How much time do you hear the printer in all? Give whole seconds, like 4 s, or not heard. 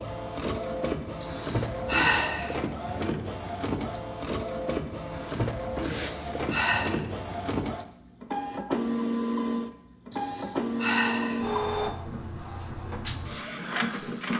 14 s.